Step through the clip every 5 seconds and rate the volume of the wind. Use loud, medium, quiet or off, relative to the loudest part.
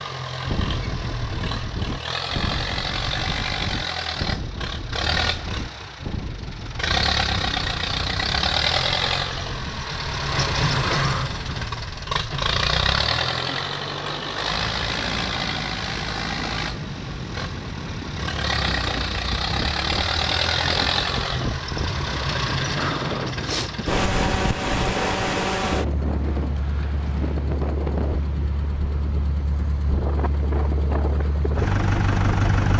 loud, medium, medium, loud, loud, loud, loud.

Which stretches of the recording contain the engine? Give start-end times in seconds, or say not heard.
0.0-32.7.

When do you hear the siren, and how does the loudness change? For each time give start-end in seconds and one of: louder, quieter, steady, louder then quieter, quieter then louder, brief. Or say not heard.
not heard.